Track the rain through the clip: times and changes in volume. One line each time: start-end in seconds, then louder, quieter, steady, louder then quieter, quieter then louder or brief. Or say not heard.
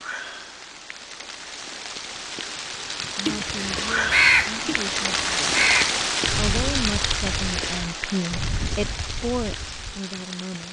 0.0-10.6 louder then quieter.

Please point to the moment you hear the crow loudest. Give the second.
4 s.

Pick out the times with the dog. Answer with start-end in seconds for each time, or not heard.
not heard.